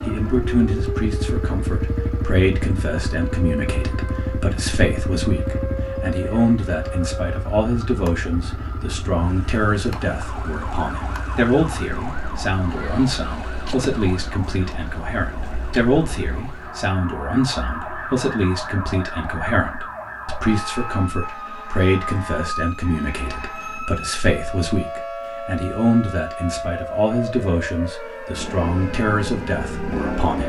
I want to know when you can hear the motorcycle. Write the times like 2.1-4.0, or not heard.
0.0-16.4, 28.3-30.4.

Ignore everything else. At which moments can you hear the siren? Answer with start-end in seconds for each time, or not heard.
0.0-30.4.